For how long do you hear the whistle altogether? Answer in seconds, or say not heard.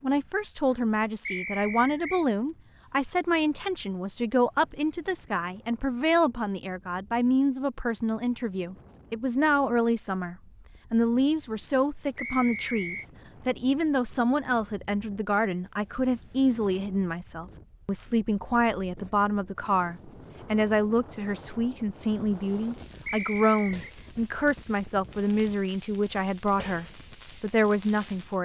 3 s.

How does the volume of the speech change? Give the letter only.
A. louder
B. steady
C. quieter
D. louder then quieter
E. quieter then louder
B.